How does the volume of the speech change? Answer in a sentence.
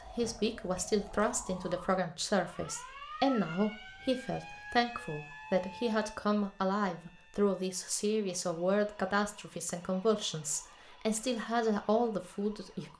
The volume of the speech stays about the same.